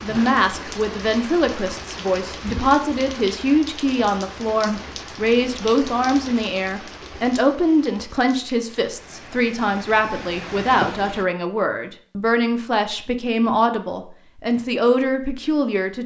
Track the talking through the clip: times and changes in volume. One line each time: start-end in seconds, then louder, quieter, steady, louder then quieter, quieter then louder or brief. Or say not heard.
0.0-16.0 steady.